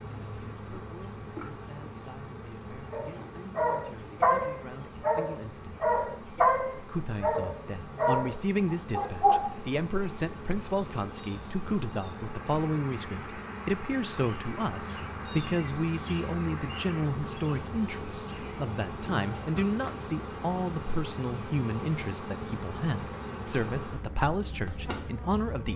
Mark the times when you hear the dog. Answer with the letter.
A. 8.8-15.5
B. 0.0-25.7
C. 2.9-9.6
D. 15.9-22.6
C.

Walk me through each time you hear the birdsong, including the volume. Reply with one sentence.
The birdsong can't be heard in this clip.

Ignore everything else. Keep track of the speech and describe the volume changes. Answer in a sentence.
The volume of the speech goes up.